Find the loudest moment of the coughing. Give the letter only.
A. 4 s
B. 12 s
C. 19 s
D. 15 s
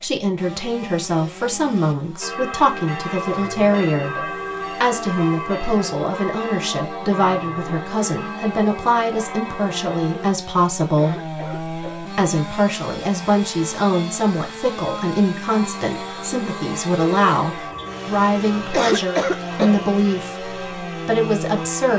C.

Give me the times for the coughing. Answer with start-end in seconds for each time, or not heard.
3.2-4.3, 10.8-12.0, 18.6-19.8.